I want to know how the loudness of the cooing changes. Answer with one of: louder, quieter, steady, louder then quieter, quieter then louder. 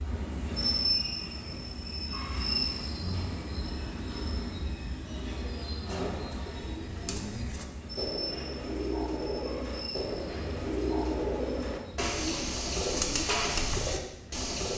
louder.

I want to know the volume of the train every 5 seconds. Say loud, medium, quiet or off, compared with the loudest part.
loud, medium, quiet.